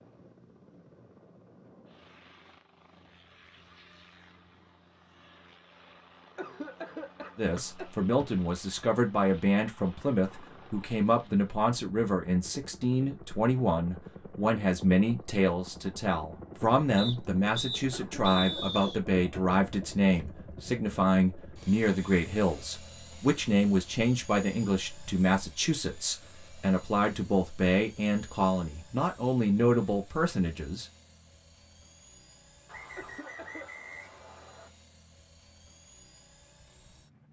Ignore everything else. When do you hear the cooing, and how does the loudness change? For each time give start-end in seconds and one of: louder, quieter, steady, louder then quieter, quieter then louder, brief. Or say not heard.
not heard.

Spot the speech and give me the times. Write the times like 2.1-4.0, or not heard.
7.3-30.9.